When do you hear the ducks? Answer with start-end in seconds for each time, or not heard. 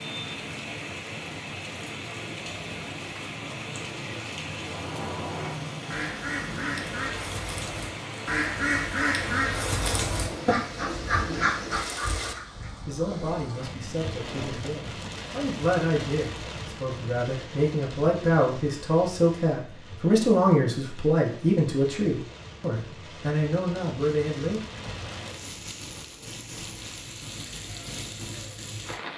4.5-12.9.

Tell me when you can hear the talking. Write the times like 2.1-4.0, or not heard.
12.8-24.6.